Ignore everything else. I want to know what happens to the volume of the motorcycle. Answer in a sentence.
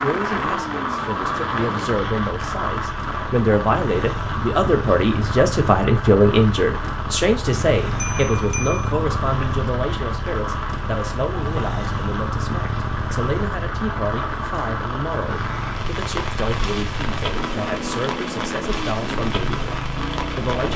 The volume of the motorcycle stays about the same.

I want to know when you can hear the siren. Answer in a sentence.
The siren can't be heard in this clip.